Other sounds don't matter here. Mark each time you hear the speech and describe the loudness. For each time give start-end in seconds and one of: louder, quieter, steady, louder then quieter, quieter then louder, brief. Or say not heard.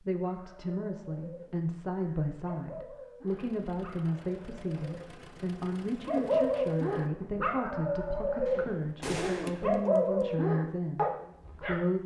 0.0-12.0 steady.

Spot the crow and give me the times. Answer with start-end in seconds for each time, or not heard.
not heard.